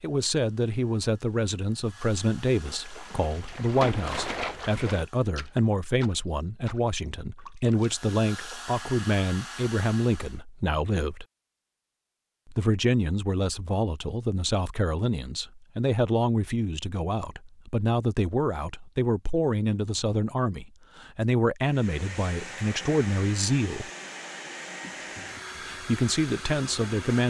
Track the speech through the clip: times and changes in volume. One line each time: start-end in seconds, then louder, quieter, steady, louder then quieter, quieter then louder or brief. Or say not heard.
0.0-11.2 steady
12.4-23.9 steady
25.6-27.2 brief.